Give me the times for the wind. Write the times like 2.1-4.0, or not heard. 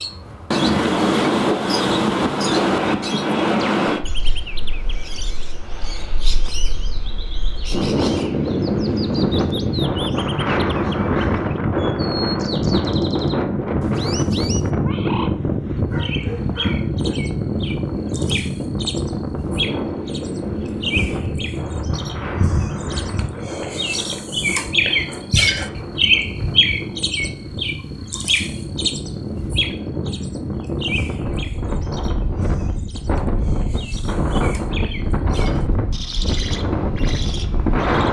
0.0-38.0.